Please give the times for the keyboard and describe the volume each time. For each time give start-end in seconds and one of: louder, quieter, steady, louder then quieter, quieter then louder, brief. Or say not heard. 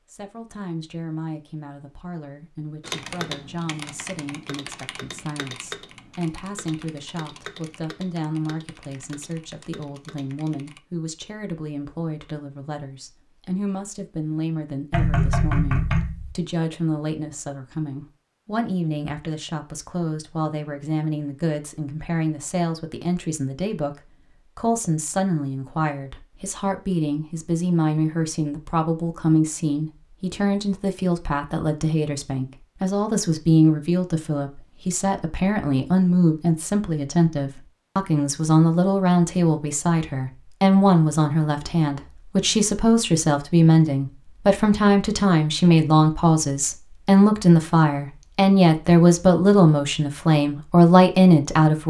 2.8-10.8 quieter.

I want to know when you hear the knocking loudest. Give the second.
15 s.